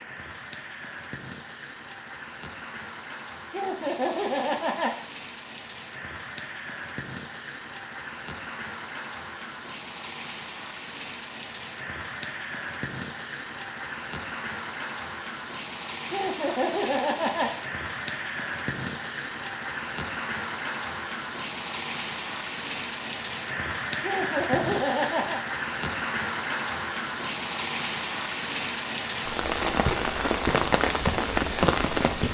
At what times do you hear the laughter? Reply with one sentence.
You can hear the laughter from 3.5 to 5.0 s, from 16.1 to 17.6 s and from 24.0 to 25.4 s.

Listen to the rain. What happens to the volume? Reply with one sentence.
The loudness of the rain goes up.